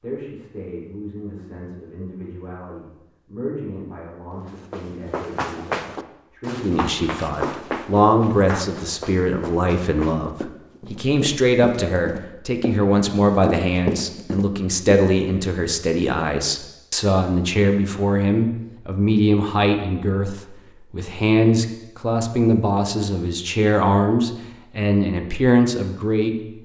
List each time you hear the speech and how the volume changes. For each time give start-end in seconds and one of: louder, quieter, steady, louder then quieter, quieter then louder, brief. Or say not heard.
0.0-26.6 louder.